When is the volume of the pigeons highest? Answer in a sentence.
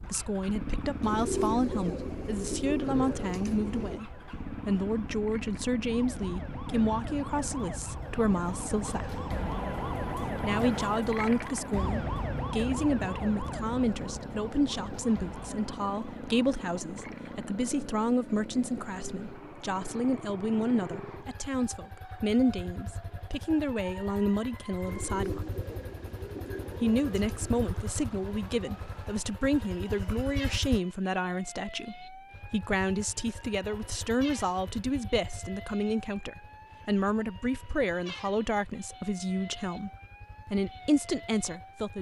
The loudest moment of the pigeons is at 1 second.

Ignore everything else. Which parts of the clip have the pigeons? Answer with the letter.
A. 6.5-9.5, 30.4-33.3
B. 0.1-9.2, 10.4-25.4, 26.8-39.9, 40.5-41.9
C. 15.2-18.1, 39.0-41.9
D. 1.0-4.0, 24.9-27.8
D.